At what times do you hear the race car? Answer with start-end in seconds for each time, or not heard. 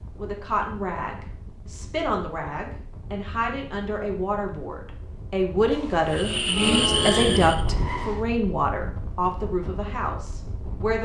6.1-8.2.